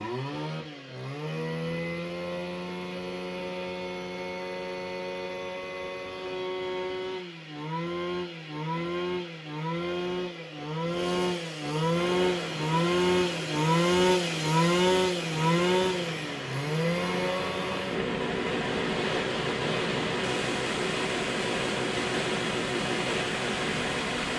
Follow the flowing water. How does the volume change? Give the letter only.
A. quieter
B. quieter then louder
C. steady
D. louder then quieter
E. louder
E.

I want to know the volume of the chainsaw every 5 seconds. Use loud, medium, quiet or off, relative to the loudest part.
medium, medium, loud, loud, medium.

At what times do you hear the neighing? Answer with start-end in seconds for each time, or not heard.
not heard.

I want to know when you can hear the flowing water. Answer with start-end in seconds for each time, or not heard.
11.9-24.3.